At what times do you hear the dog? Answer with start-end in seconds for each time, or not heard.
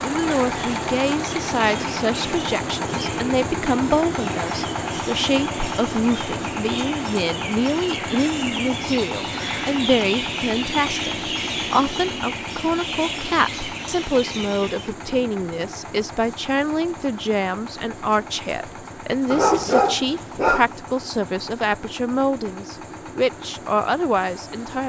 19.3-20.7.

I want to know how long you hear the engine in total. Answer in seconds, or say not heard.
25 s.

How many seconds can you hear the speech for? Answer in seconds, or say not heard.
25 s.